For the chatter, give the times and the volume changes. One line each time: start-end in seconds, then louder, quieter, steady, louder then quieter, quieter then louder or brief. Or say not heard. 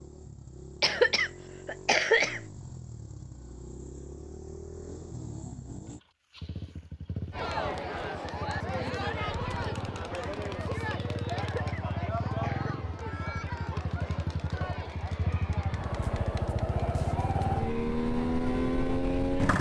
7.3-19.2 quieter.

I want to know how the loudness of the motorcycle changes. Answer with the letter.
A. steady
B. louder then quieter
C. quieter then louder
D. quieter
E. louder
E.